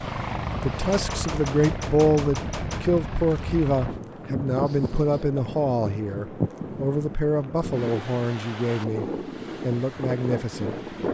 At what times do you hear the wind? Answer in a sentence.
You can hear the wind from 0.0 to 11.0 s.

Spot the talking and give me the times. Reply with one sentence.
You can hear the talking from 0.6 to 10.8 s.